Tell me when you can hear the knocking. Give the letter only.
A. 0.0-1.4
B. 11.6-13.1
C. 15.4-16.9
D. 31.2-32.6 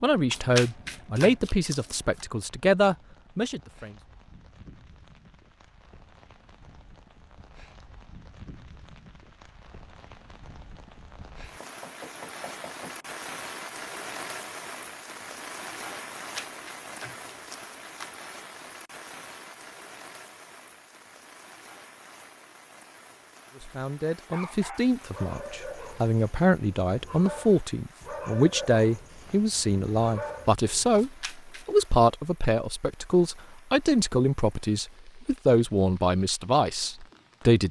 B.